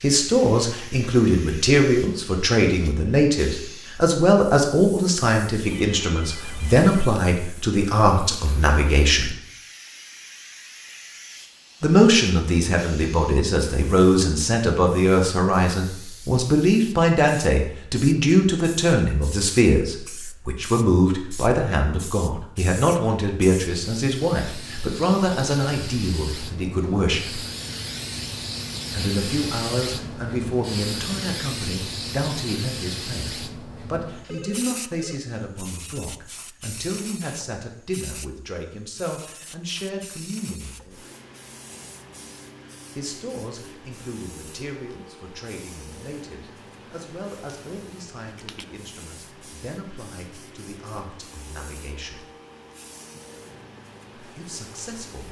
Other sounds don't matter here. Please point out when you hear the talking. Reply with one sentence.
You can hear the talking from 0.0 to 9.3 s, from 11.8 to 27.4 s, from 28.9 to 41.0 s, from 43.0 to 52.2 s and from 54.1 to 55.2 s.